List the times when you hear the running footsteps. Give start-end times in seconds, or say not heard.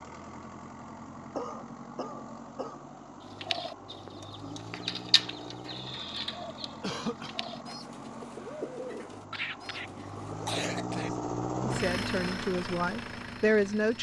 not heard.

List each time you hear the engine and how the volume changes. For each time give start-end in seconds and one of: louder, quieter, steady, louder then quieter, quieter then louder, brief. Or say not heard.
0.0-13.9 louder.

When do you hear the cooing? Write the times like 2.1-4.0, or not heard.
3.4-10.8.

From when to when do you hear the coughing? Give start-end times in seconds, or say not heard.
1.4-2.9, 6.8-7.3, 9.3-11.1.